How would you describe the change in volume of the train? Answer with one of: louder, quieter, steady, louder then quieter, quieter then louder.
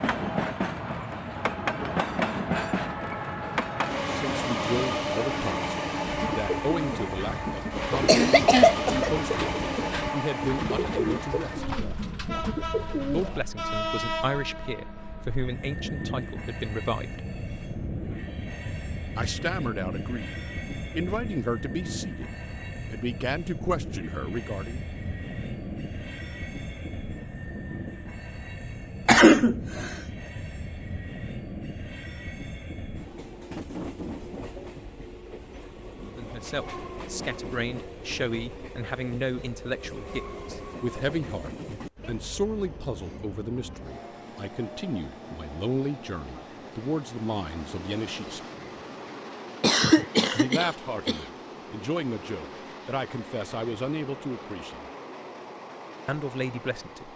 quieter.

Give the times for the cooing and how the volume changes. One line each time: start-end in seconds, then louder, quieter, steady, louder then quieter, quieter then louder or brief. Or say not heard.
6.0-13.4 steady.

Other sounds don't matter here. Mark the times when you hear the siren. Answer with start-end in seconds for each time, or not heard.
not heard.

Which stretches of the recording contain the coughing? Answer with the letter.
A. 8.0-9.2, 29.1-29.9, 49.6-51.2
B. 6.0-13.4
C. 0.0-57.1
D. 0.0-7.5
A.